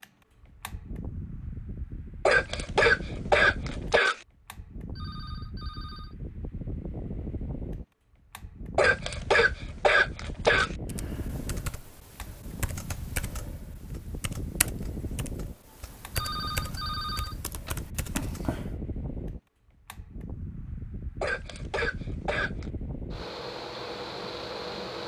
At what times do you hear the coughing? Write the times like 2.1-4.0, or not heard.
2.2-4.2, 8.8-10.8, 21.2-22.7.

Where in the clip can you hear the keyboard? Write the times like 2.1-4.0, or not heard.
10.8-18.7.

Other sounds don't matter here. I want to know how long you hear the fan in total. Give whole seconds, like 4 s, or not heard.
25 s.